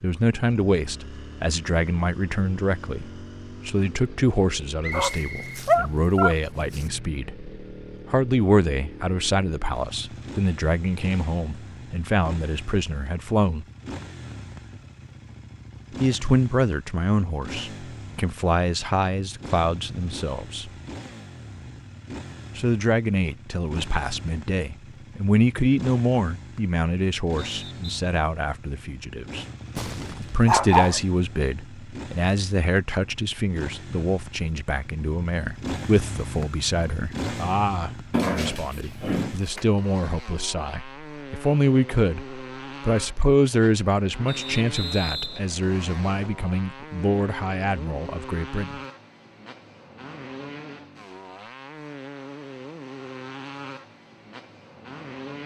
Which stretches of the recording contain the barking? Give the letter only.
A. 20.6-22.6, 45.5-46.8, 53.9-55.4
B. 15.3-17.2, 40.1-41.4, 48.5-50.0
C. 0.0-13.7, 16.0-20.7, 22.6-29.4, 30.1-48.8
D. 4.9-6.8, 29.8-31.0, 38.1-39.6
D.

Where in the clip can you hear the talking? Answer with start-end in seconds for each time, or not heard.
0.0-13.7, 16.0-20.7, 22.6-29.4, 30.1-48.8.